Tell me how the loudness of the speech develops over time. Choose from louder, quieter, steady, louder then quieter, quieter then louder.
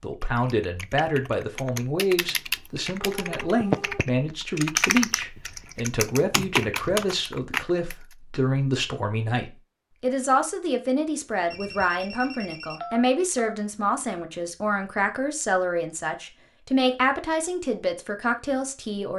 steady.